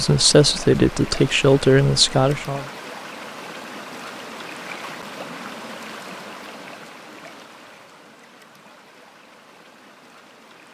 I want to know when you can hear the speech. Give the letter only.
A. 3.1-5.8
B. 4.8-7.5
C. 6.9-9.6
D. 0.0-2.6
D.